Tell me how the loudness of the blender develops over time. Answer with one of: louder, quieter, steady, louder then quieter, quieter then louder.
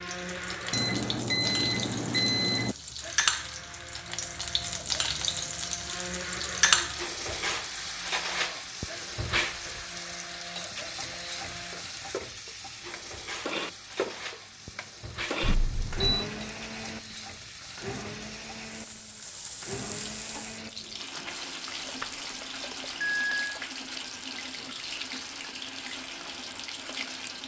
louder then quieter.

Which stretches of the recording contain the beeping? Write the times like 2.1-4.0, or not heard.
0.7-2.8, 15.4-16.2, 21.6-23.6.